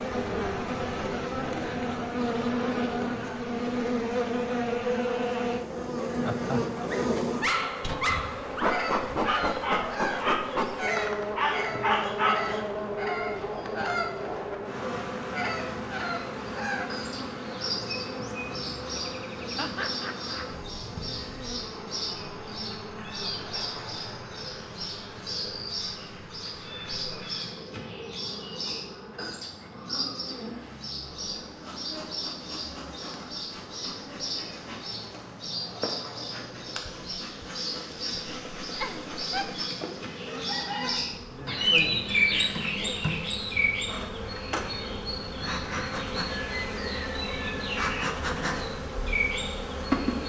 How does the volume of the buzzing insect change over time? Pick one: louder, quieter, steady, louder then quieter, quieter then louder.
quieter then louder.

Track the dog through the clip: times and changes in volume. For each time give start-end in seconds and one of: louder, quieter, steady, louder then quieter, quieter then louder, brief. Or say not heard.
6.9-12.7 quieter then louder.